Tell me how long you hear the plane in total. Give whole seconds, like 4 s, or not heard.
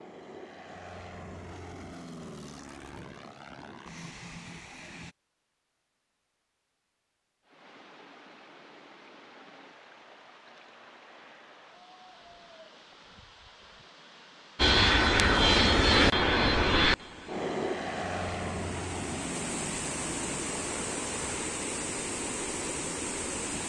12 s.